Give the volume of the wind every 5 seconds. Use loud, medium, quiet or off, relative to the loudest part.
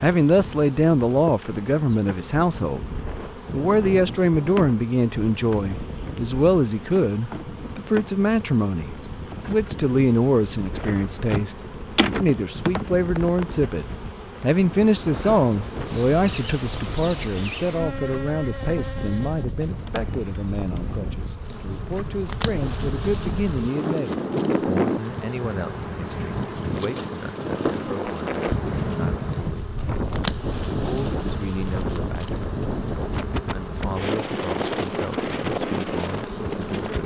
medium, medium, medium, medium, loud, loud, loud, loud.